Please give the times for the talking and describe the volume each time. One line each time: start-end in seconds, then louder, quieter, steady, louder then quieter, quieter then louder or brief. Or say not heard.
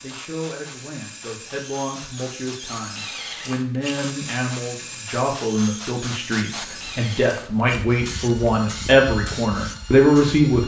0.0-10.6 louder.